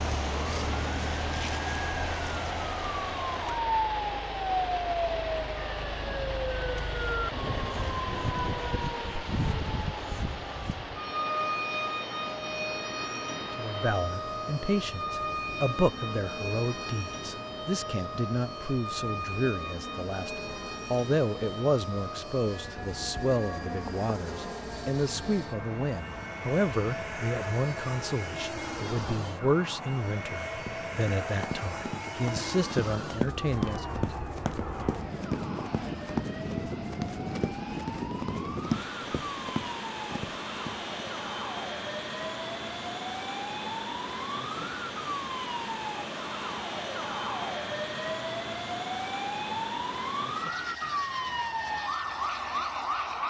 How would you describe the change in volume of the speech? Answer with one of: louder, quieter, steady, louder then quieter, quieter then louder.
steady.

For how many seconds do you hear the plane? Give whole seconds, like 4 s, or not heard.
53 s.